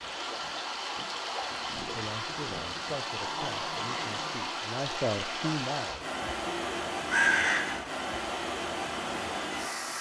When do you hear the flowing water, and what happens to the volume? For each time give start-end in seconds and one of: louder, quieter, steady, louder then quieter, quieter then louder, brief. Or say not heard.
0.0-9.9 steady.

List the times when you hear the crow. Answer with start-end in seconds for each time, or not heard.
6.2-7.8.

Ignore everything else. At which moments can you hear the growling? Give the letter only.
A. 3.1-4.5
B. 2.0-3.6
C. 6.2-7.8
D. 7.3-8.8
A.